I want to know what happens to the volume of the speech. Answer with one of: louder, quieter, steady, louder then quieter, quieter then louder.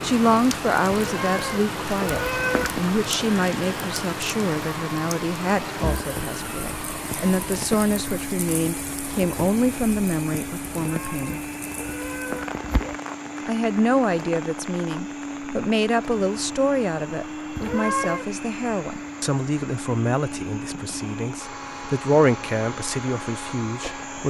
steady.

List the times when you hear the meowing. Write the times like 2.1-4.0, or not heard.
1.0-2.8, 10.8-12.9, 17.6-18.2.